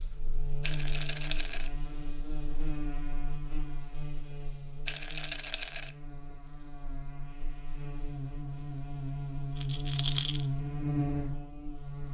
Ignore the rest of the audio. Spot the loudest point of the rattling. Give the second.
10 s.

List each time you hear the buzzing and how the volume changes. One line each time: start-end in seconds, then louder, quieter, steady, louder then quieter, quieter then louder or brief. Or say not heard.
0.0-12.0 quieter then louder.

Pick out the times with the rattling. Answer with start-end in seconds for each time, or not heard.
0.6-1.7, 4.8-6.0, 9.5-10.4.